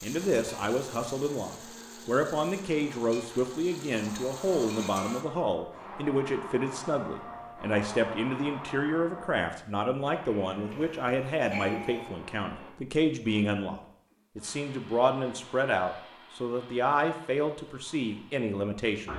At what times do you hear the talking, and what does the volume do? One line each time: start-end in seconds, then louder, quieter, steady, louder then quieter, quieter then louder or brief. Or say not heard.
0.0-19.1 steady.